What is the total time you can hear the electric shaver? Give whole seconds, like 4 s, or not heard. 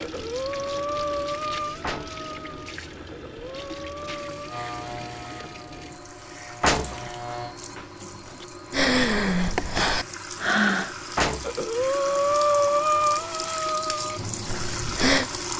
3 s.